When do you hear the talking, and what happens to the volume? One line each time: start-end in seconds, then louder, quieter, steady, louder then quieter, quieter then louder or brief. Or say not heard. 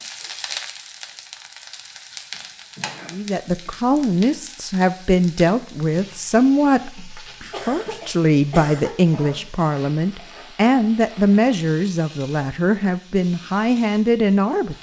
3.1-14.7 steady.